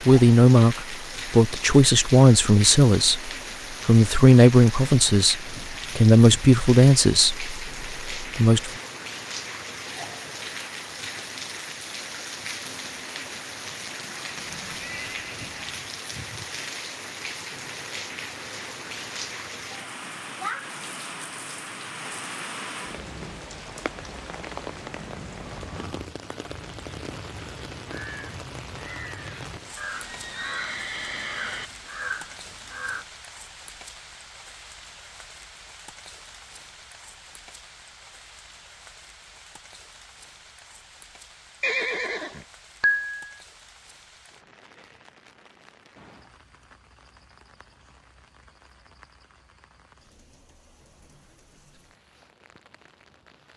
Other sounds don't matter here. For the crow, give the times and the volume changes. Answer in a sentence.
The crow can be heard from 25.1 to 33.0 s, getting louder.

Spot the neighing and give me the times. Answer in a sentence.
The neighing can be heard from 14.3 to 15.5 s, from 29.9 to 31.7 s and from 41.6 to 43.2 s.